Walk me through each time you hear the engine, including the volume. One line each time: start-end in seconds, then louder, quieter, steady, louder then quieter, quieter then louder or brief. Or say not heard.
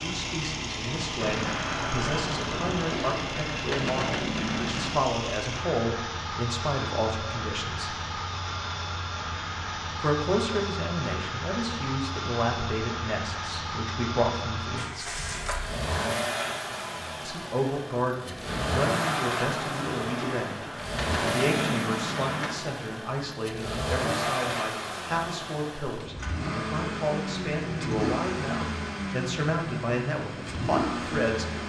0.0-31.6 steady.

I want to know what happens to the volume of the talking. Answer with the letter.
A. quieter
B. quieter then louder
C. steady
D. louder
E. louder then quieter
C.